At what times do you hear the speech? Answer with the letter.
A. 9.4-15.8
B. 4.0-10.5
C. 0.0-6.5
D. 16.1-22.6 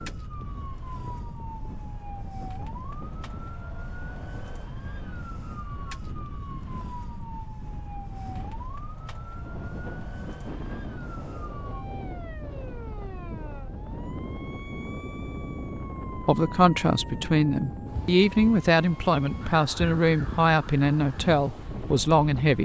D.